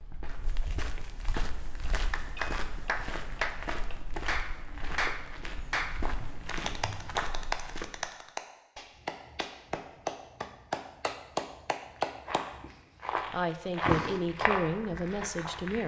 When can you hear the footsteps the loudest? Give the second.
14 s.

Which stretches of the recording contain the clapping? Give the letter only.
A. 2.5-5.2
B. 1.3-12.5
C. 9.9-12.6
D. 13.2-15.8
B.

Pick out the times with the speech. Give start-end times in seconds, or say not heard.
13.2-15.8.